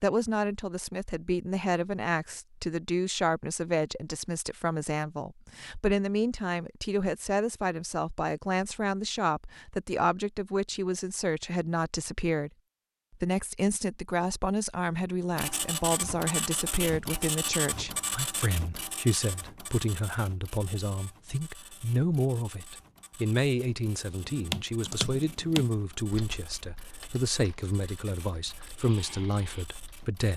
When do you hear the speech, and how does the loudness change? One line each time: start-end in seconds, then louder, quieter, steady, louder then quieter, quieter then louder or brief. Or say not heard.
0.0-12.5 steady
13.2-30.3 steady.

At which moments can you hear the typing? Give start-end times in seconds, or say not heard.
24.2-30.1.